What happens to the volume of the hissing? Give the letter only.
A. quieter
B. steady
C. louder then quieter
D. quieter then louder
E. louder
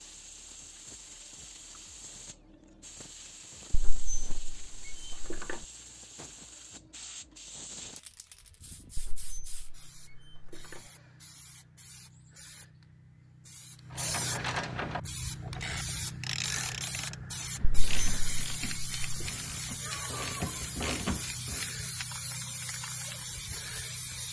E.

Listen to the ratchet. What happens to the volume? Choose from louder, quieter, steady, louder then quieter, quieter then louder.
quieter then louder.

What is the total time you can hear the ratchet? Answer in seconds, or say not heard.
8 s.